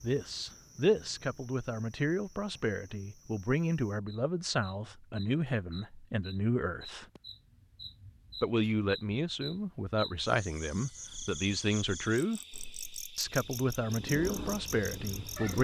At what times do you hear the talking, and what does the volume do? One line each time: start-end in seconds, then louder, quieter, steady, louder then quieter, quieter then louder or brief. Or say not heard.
0.0-7.0 steady
8.4-12.4 steady
13.2-15.5 brief.